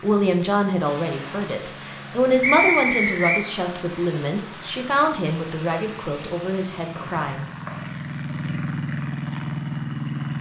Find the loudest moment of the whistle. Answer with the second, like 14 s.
3 s.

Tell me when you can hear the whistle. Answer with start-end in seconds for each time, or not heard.
2.4-3.5, 7.0-7.9.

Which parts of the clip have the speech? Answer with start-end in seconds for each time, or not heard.
0.0-7.5.